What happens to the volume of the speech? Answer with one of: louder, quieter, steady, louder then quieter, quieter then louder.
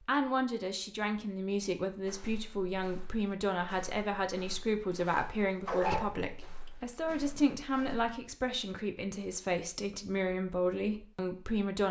steady.